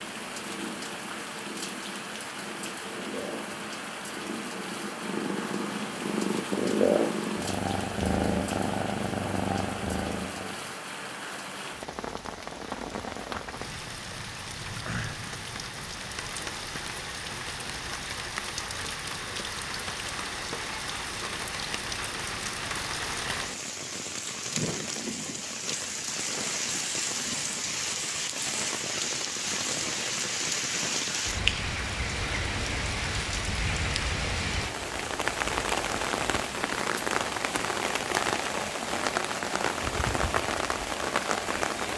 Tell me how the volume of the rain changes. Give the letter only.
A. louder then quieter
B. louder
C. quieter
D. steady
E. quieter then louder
B.